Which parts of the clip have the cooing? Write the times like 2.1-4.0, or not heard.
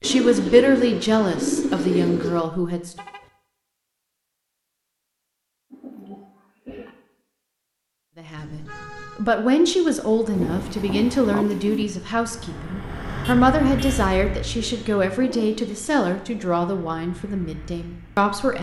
0.0-2.5, 5.7-7.0, 10.3-11.8, 14.5-16.5.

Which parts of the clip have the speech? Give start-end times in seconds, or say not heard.
0.0-2.9, 8.2-18.5.